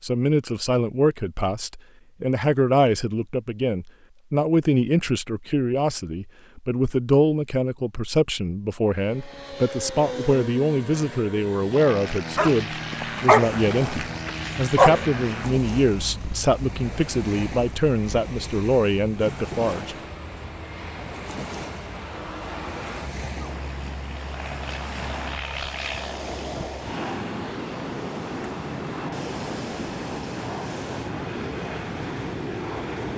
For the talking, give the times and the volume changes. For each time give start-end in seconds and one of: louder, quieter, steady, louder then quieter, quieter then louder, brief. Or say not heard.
0.0-19.9 steady.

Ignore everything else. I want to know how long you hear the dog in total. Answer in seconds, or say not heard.
3 s.